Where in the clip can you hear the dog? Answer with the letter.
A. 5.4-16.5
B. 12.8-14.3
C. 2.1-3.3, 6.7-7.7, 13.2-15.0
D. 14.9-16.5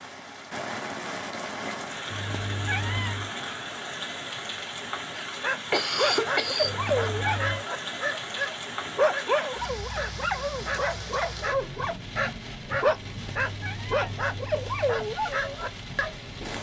A.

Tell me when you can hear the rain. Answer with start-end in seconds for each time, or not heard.
0.0-16.5.